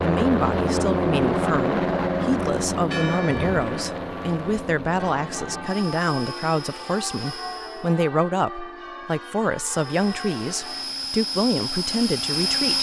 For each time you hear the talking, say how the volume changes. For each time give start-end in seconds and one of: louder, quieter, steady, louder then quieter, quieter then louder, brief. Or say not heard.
0.0-12.7 steady.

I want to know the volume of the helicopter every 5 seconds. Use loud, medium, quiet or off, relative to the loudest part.
loud, quiet, loud.